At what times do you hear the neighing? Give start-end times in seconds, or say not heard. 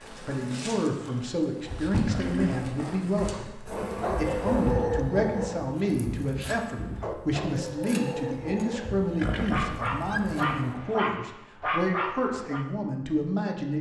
2.0-2.6, 9.2-10.2.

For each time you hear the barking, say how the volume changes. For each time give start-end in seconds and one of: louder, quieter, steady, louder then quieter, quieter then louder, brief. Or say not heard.
3.7-12.7 quieter then louder.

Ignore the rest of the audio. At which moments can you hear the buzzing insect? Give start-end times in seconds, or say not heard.
0.0-10.8.